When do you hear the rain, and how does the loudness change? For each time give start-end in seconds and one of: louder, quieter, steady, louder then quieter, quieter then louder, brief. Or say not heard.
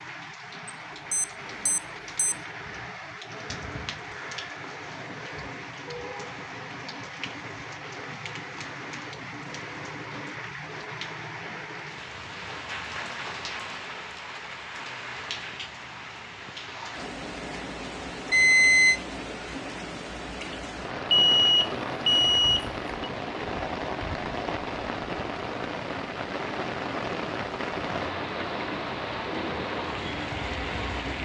0.0-31.2 louder.